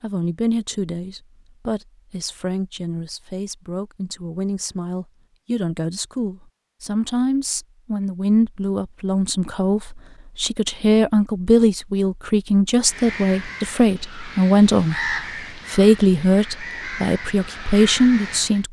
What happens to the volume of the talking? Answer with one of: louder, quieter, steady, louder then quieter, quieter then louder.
louder.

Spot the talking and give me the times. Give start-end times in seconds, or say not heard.
0.0-18.6.